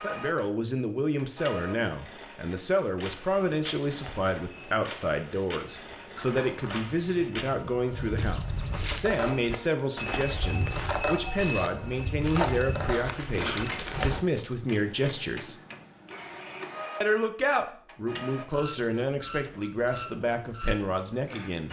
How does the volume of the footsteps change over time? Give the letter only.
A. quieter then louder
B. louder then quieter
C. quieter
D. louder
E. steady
D.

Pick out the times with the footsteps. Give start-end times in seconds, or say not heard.
3.0-14.2.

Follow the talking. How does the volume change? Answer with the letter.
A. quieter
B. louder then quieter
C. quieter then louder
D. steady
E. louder
D.